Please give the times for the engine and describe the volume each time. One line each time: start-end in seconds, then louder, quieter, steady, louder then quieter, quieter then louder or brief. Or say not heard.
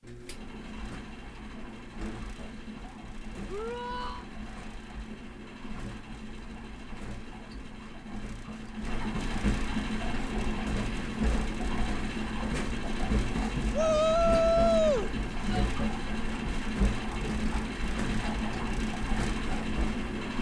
0.0-20.3 louder.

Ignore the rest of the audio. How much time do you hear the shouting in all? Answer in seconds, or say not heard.
3 s.